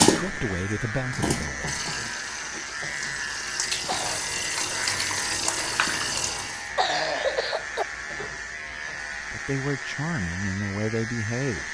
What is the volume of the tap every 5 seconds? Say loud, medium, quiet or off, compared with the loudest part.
loud, loud, off.